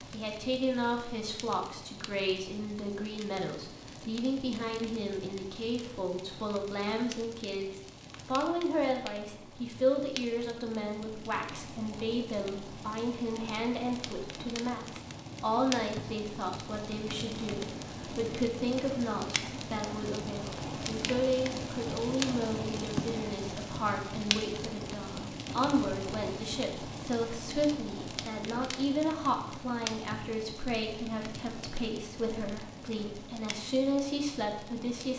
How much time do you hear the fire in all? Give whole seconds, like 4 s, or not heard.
35 s.